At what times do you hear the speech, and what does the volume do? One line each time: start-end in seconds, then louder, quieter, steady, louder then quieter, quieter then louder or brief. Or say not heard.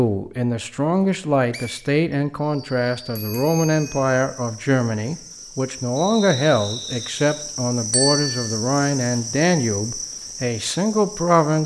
0.0-11.6 steady.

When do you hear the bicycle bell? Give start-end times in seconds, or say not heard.
3.1-4.2, 7.9-8.4.